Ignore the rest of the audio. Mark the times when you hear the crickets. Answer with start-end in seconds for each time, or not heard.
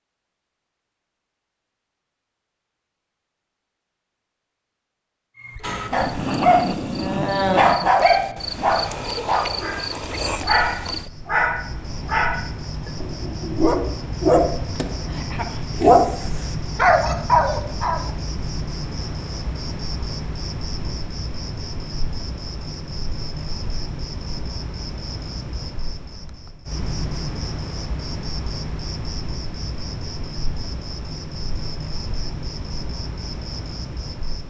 5.8-34.4.